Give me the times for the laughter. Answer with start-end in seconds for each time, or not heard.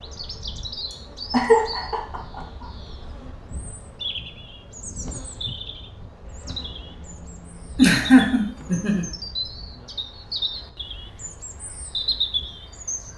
1.3-2.6, 7.8-9.1.